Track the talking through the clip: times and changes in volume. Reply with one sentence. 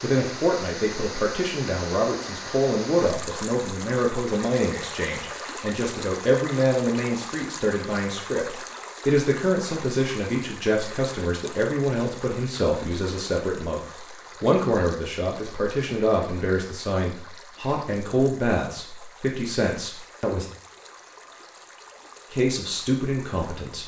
The talking can be heard from 0.0 to 20.4 s, at a steady volume; and briefly from 22.3 to 23.8 s.